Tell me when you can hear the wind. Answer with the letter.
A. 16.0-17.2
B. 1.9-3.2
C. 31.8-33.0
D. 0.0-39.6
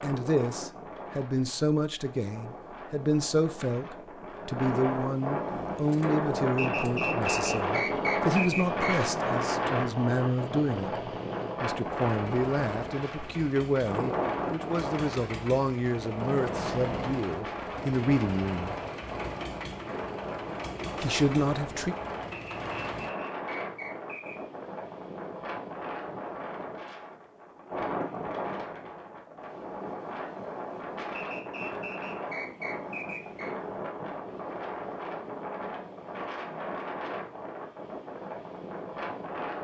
D.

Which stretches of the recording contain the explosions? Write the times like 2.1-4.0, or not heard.
16.0-17.2.